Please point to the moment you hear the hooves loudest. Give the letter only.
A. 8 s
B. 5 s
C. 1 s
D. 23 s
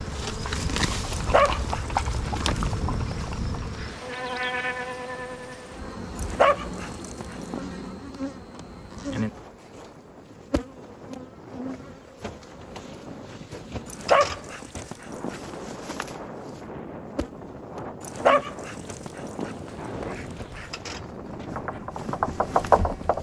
D.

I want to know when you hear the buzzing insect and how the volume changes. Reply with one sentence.
The buzzing insect can be heard from 0.0 to 23.1 s, getting quieter.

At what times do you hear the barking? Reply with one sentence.
You can hear the barking from 1.1 to 3.2 s, from 6.2 to 7.6 s, from 13.8 to 15.8 s and from 18.0 to 20.6 s.